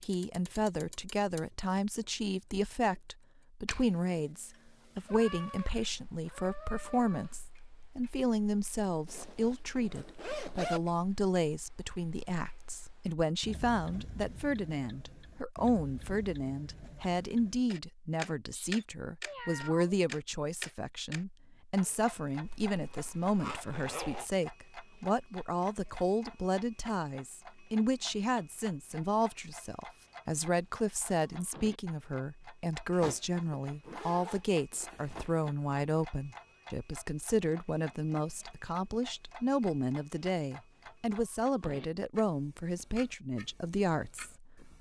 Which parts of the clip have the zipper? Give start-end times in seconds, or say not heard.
9.1-10.8, 22.4-24.3, 33.6-35.5.